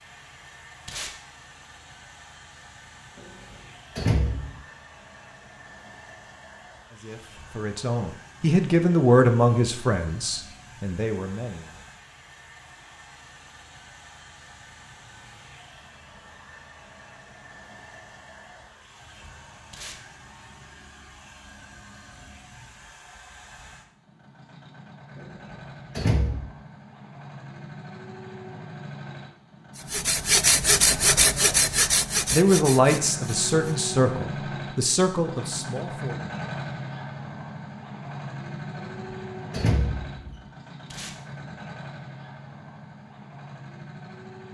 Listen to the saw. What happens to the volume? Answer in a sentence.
The loudness of the saw goes down.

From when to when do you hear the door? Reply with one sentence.
You can hear the door from 4.0 to 4.6 s, from 25.9 to 26.5 s and from 39.5 to 40.4 s.